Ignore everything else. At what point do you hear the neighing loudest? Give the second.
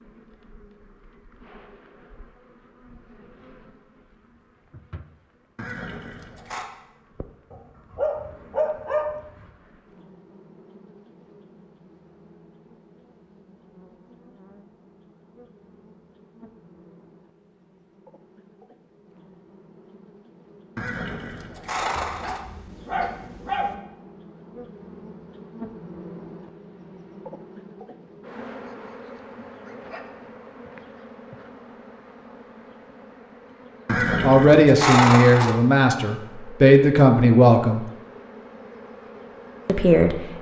35 s.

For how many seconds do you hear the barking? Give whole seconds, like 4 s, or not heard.
5 s.